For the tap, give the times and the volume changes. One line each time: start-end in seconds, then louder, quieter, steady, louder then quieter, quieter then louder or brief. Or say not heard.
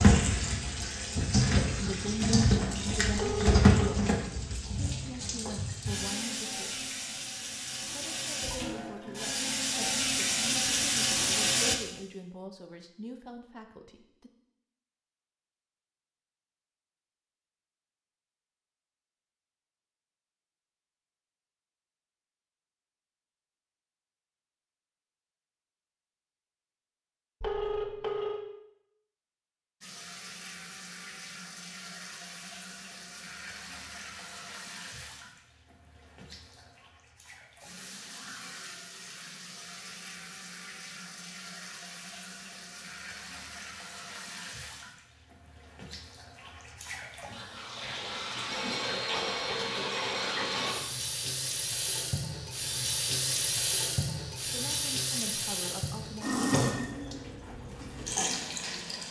0.0-11.8 quieter then louder
29.8-59.0 louder.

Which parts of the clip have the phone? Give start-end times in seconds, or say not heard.
3.1-4.0, 27.4-28.4, 48.5-50.6.